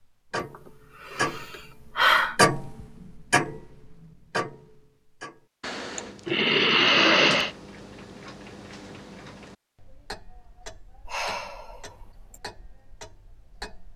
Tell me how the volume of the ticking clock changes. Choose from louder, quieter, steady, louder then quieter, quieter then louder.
quieter.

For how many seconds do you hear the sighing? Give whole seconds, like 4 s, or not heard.
5 s.